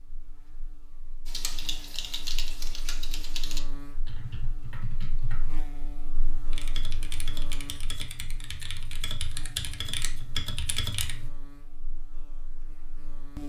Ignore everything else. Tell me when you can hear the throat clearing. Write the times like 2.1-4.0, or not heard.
not heard.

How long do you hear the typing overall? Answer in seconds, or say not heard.
10 s.